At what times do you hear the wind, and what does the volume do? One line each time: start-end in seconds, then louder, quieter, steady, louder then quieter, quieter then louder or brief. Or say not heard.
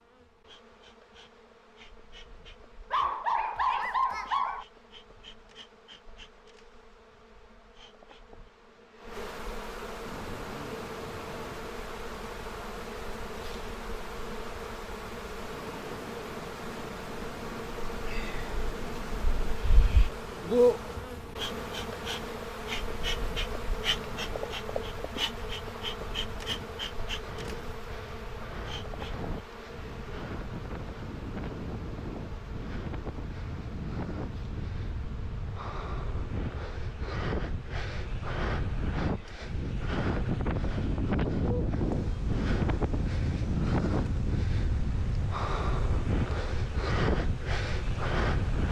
10.0-48.6 louder.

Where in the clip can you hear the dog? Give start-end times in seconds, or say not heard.
2.9-4.7.